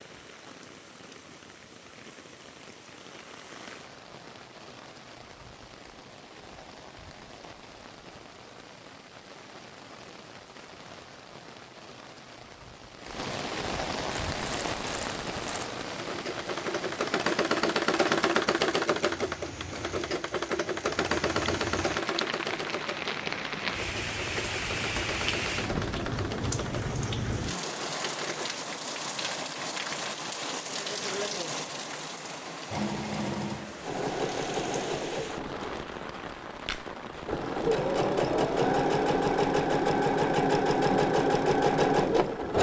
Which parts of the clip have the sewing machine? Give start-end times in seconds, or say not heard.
14.3-28.4, 32.7-42.5.